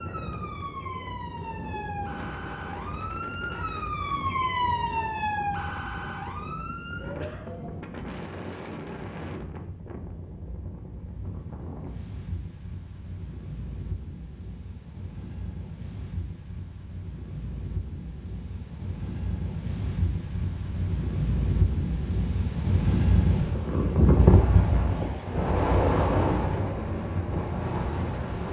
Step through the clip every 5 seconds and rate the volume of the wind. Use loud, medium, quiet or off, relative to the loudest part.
quiet, quiet, quiet, quiet, loud, loud.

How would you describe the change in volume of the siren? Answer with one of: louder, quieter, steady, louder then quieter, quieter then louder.
louder then quieter.